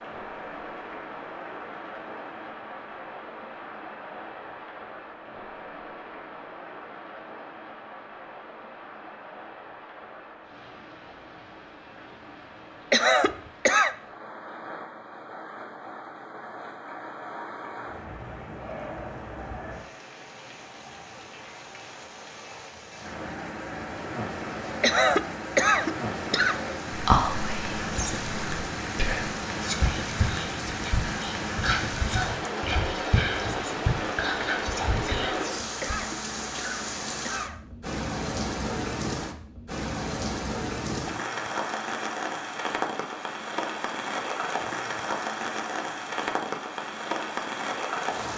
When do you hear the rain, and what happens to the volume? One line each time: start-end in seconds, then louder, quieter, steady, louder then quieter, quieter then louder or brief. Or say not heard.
0.0-48.3 louder.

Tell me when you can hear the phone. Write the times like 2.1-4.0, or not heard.
not heard.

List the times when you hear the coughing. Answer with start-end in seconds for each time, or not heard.
12.9-13.9, 24.8-26.6, 35.0-37.7.